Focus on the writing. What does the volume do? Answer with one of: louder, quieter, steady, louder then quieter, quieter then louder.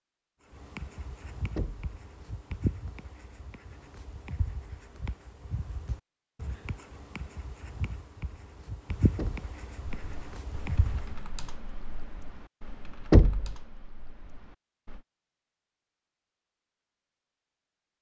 quieter then louder.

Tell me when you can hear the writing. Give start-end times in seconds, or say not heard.
0.5-11.2.